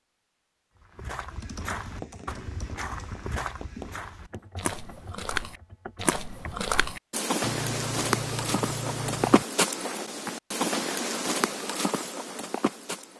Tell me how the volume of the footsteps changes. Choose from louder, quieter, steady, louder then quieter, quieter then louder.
louder.